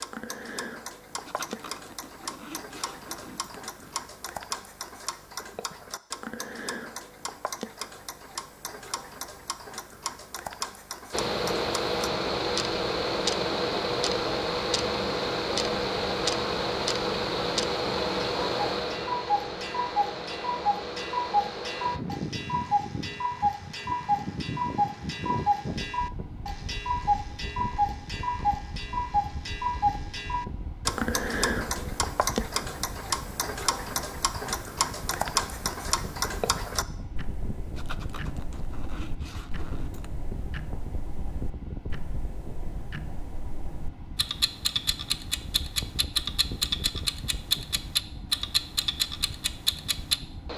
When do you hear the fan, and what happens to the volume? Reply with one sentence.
The fan can be heard from 11.1 to 50.5 s, getting quieter.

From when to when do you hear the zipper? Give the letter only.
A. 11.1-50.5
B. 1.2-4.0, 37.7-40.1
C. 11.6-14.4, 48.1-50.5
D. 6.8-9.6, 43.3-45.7
B.